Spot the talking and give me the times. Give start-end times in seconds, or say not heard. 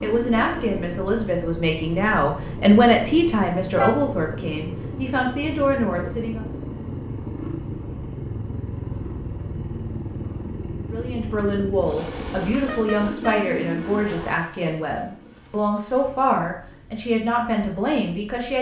0.0-6.5, 10.9-18.5.